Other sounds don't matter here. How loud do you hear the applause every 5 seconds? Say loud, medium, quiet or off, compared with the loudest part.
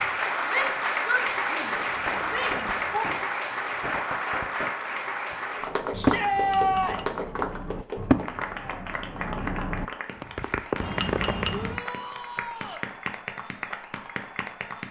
loud, medium, medium.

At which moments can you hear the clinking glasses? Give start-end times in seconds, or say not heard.
1.9-3.0, 6.3-7.1, 10.8-11.8.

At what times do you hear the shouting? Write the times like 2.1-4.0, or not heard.
0.5-3.0, 5.9-7.2, 11.4-12.8.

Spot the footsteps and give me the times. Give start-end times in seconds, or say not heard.
not heard.